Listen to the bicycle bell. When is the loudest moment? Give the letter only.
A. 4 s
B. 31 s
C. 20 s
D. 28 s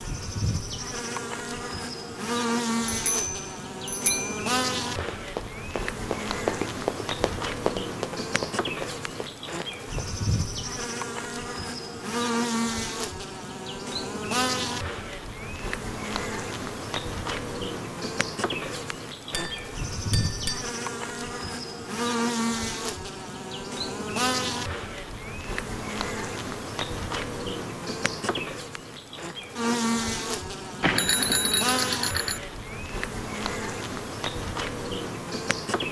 B.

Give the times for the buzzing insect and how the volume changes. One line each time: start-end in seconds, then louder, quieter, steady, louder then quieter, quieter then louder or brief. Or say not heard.
0.0-35.8 steady.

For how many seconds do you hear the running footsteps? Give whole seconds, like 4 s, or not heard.
5 s.